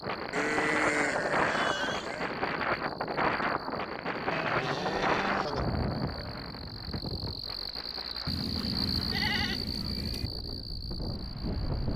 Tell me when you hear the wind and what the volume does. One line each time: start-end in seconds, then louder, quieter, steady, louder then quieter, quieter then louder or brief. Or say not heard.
0.0-11.9 quieter.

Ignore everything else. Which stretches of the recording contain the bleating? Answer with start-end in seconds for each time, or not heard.
0.3-2.3, 4.3-5.7, 8.2-10.3.